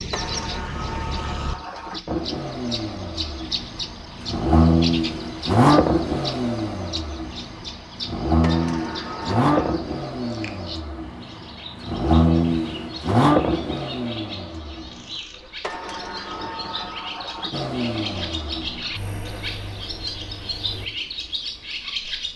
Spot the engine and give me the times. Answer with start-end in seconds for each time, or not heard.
2.0-15.2, 17.5-20.9.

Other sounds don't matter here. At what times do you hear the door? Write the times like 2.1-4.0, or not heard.
0.1-2.0, 8.4-9.8, 15.6-17.6.